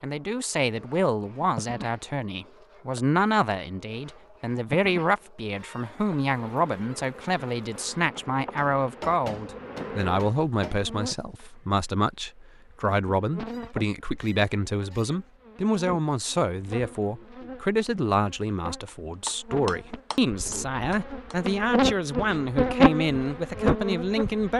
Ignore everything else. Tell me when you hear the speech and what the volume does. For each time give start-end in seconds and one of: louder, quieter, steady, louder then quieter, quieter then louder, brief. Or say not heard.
0.0-24.5 steady.